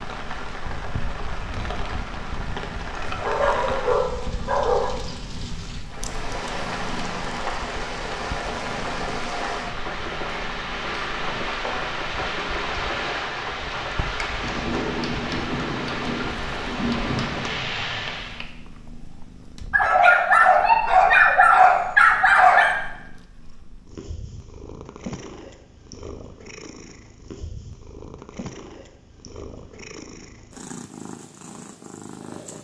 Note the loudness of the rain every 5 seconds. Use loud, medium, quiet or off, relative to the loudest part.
medium, loud, loud, loud, off, off, off.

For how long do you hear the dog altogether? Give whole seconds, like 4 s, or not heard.
5 s.